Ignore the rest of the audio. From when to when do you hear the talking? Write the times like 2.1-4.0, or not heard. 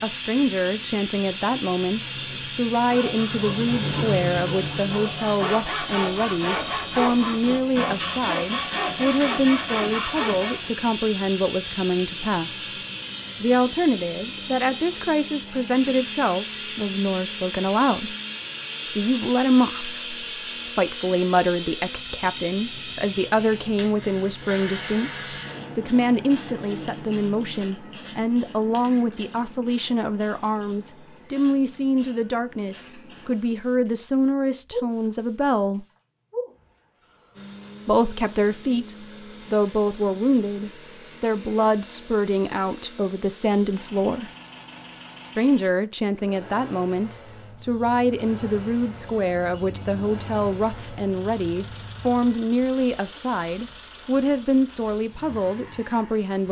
0.0-12.7, 13.4-18.1, 18.9-35.9, 37.9-44.3, 45.4-56.4.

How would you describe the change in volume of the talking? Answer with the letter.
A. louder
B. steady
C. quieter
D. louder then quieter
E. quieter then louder
B.